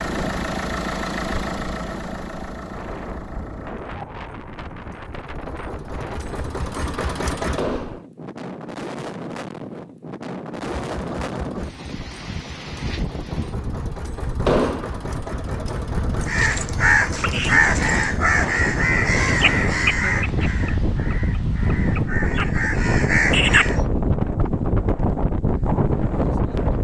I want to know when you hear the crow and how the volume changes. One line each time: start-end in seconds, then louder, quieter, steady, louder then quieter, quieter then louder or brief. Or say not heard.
16.2-23.8 quieter then louder.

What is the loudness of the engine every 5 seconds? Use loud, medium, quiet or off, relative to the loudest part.
loud, loud, medium, loud, off, off.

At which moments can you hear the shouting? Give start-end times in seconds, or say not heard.
not heard.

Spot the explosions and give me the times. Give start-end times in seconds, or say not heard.
7.5-8.1, 14.4-14.9.